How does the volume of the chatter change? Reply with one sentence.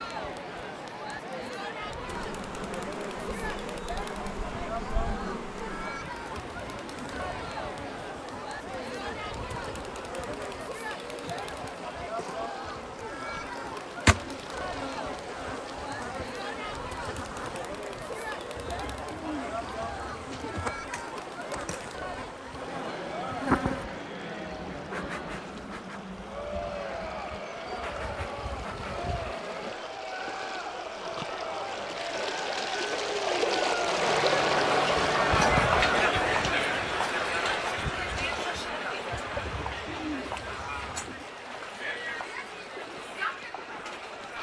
The volume of the chatter goes up.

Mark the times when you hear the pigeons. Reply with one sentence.
The pigeons can be heard from 18.6 to 20.6 s and from 39.3 to 41.2 s.